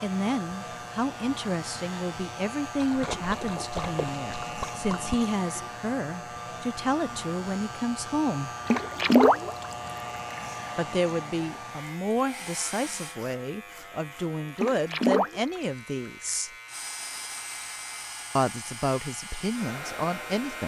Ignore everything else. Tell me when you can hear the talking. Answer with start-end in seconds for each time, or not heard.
0.0-8.5, 10.8-16.5, 18.4-20.6.